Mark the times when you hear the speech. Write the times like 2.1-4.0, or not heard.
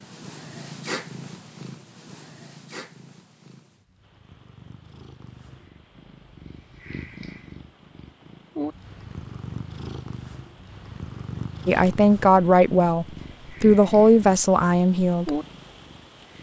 11.7-15.4.